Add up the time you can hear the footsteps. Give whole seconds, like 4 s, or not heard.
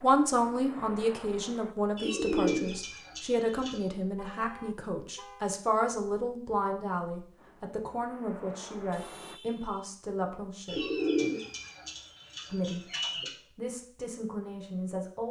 not heard.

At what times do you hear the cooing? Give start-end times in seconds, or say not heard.
1.9-3.9, 10.7-13.3.